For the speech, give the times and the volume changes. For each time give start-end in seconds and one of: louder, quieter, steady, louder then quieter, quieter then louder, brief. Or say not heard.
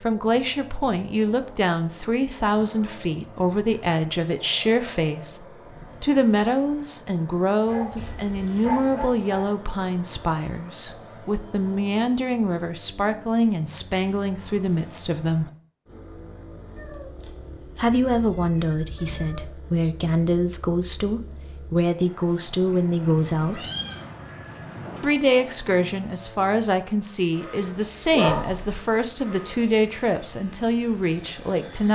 0.0-15.4 steady
17.8-23.7 steady
25.0-31.9 steady.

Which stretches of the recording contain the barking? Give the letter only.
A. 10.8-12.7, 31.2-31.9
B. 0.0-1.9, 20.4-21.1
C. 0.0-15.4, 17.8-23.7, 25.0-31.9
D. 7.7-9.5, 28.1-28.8
D.